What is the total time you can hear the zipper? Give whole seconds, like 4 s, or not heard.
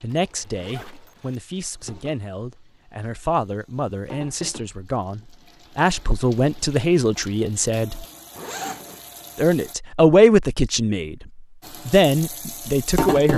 2 s.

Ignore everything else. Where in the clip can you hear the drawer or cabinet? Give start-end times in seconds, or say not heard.
not heard.